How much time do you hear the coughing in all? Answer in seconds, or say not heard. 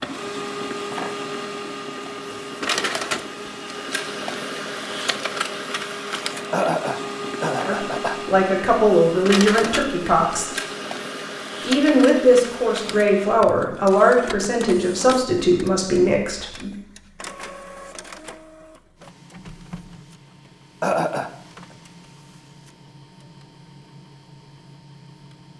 2 s.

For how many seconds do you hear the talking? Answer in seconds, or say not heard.
8 s.